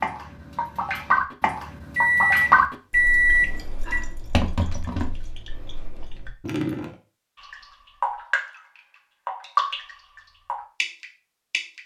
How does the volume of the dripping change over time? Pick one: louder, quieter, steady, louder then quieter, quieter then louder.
quieter then louder.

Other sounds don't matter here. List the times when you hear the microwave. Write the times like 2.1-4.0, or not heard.
1.9-4.0.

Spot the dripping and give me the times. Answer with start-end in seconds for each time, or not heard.
0.0-11.8.